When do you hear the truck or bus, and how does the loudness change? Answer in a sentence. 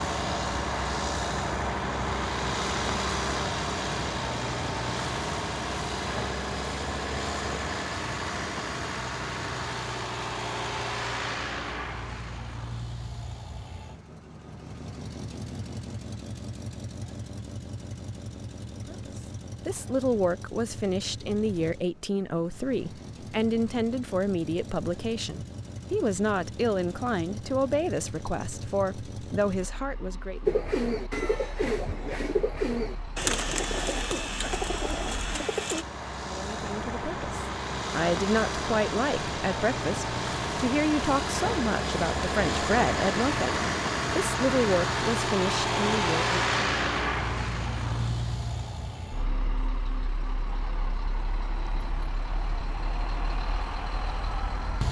The truck or bus can be heard from 0.0 to 54.8 s, getting quieter then louder.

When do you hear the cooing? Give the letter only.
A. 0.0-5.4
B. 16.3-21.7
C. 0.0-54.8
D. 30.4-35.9
D.